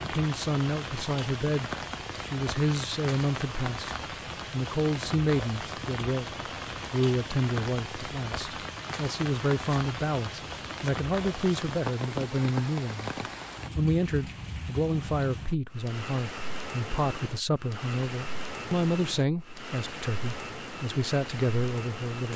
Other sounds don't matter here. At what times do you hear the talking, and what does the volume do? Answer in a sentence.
You can hear the talking from 0.0 to 22.3 s, at a steady volume.